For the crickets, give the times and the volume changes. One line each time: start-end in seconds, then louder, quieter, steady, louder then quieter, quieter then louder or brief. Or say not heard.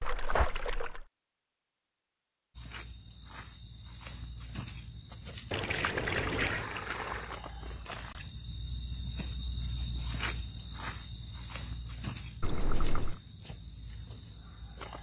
2.5-14.9 louder then quieter.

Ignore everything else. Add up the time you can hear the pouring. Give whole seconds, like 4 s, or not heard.
4 s.